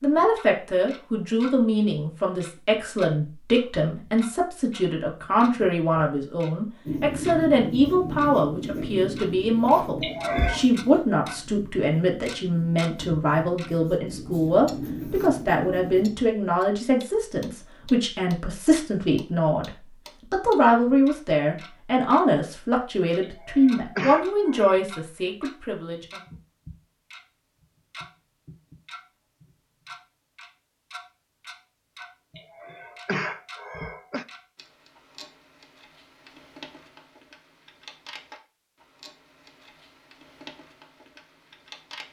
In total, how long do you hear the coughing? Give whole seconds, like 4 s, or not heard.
4 s.